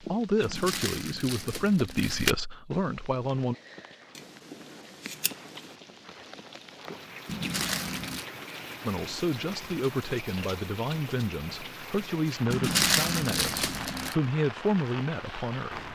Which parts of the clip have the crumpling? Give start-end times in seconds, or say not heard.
0.4-2.4, 7.2-8.2, 12.5-14.2.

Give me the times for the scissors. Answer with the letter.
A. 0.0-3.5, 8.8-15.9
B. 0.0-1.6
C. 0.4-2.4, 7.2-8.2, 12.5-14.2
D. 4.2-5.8
D.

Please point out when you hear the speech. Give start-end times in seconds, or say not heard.
0.0-3.5, 8.8-15.9.